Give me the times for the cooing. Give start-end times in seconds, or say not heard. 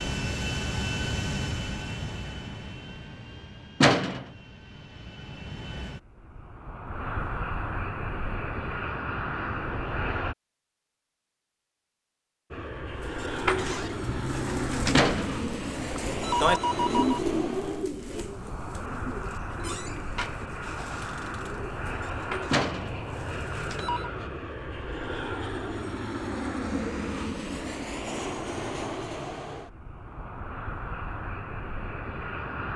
13.0-24.0.